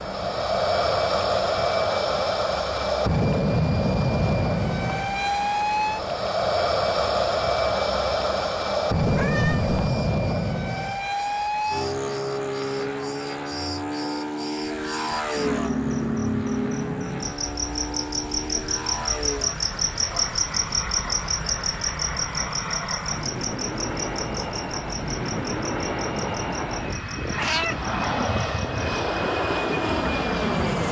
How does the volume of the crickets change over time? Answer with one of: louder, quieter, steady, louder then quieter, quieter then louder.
louder then quieter.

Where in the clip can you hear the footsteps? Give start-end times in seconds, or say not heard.
not heard.